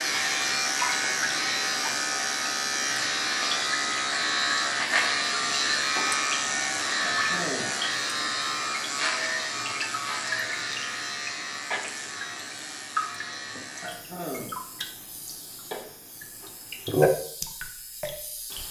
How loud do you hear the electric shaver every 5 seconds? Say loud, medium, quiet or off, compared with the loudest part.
loud, loud, medium, quiet.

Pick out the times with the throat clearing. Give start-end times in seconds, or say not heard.
7.0-7.8, 13.8-14.6.